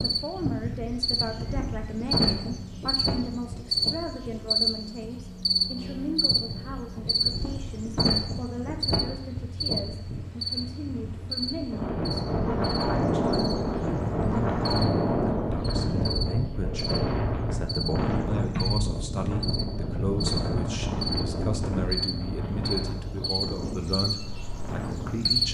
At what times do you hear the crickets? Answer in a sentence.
You can hear the crickets from 0.0 to 25.4 s.